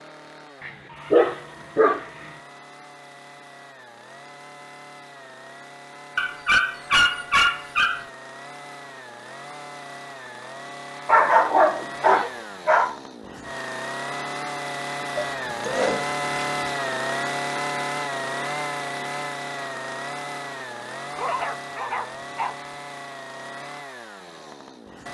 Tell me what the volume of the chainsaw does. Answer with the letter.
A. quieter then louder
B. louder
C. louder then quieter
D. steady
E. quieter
C.